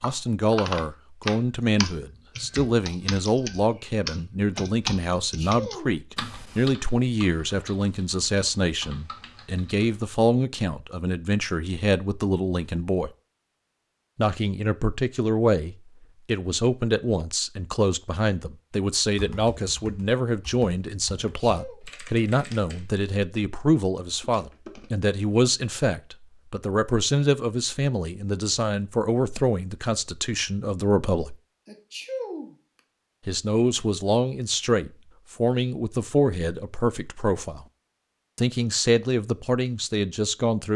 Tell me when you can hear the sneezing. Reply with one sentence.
The sneezing can be heard from 5.2 to 6.0 s, from 21.1 to 21.8 s and from 31.6 to 32.5 s.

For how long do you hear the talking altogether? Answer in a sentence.
The talking can be heard for 37 seconds in total.